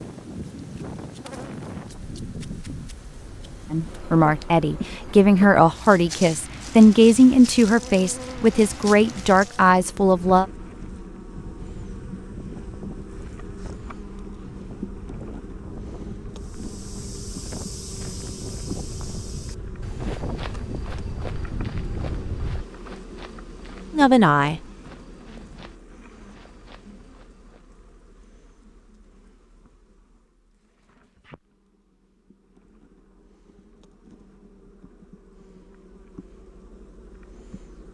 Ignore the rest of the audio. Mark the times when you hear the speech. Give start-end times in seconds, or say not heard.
3.7-10.4, 23.9-24.6.